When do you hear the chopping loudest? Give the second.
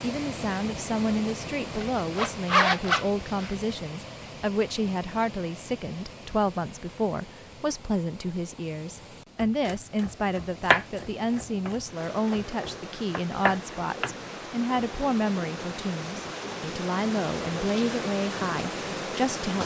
11 s.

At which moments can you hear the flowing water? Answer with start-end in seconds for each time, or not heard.
0.0-19.6.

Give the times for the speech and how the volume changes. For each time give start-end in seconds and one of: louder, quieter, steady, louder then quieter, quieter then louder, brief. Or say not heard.
0.0-19.6 steady.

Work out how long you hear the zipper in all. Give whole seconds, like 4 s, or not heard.
2 s.